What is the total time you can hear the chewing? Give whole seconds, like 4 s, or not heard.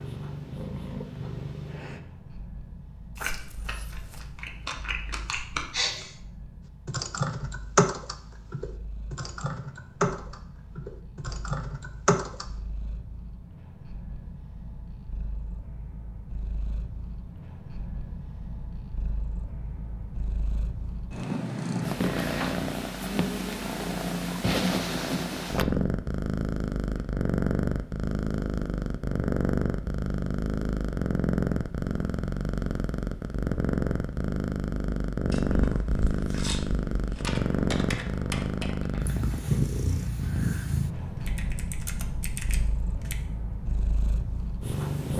5 s.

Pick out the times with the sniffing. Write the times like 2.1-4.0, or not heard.
5.3-6.2.